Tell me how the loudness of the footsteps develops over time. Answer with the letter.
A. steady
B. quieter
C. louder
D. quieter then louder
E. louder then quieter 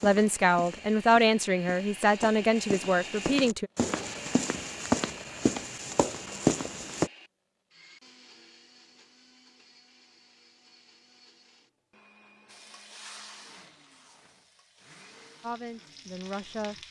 C.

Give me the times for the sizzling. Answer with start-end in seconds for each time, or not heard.
12.4-16.8.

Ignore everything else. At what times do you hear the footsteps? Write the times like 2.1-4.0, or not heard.
0.0-7.1.